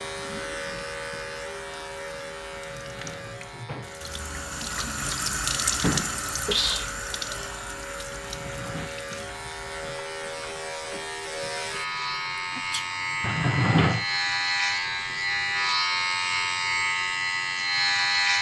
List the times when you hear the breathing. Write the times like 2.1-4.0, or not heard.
not heard.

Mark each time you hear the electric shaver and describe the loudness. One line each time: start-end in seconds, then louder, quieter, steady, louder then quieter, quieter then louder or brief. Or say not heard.
0.0-18.3 quieter then louder.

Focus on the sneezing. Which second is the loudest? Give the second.
7 s.